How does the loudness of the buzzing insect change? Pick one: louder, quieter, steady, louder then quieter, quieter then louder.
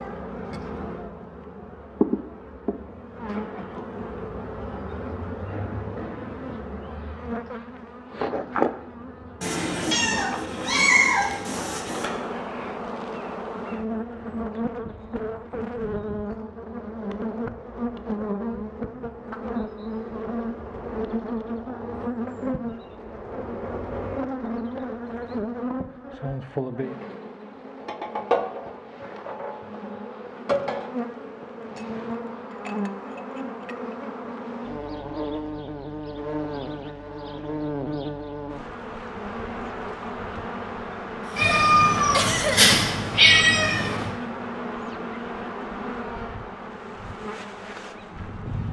steady.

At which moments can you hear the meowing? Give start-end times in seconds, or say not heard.
9.4-12.1, 41.4-44.1.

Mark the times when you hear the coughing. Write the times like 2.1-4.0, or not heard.
41.2-42.9.